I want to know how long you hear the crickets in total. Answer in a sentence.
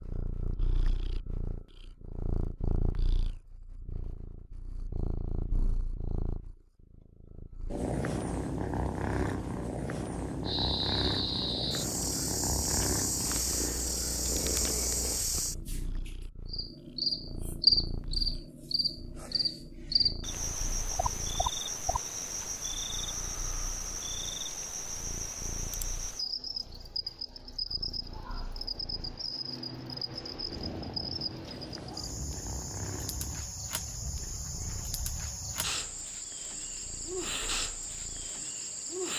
You can hear the crickets for 29 seconds altogether.